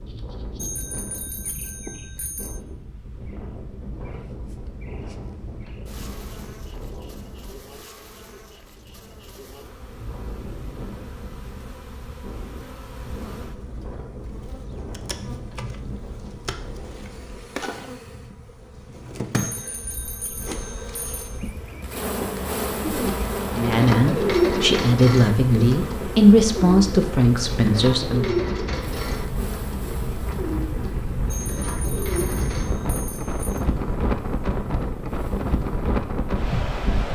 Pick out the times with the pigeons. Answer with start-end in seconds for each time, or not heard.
22.8-32.6.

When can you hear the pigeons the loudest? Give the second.
24 s.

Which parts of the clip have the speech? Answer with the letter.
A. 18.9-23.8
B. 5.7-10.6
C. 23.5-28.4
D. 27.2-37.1
C.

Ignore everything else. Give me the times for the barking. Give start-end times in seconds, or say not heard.
not heard.